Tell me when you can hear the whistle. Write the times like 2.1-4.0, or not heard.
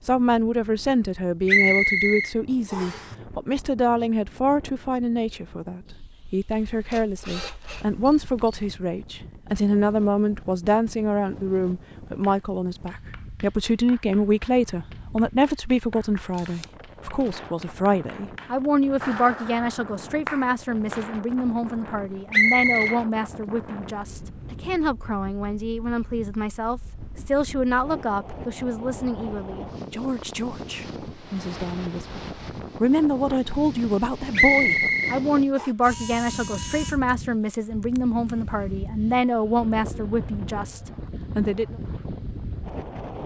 1.4-3.0, 22.3-22.9, 34.4-35.7.